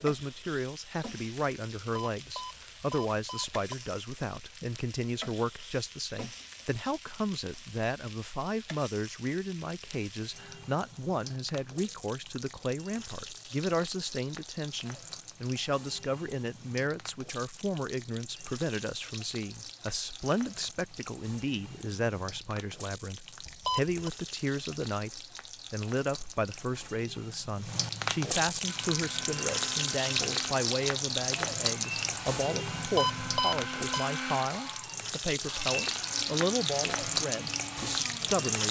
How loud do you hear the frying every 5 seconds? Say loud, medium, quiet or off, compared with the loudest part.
quiet, quiet, quiet, quiet, quiet, loud, loud, loud.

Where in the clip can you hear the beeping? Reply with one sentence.
You can hear the beeping from 1.9 to 3.8 s, from 23.4 to 24.0 s and from 32.8 to 34.1 s.